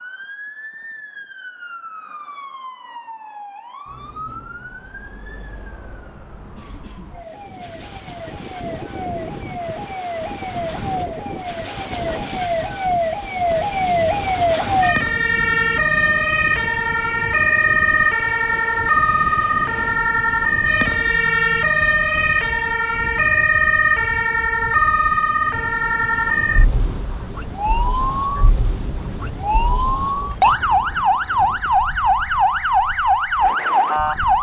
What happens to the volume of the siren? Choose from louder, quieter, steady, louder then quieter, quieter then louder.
louder.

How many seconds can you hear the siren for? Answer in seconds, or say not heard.
34 s.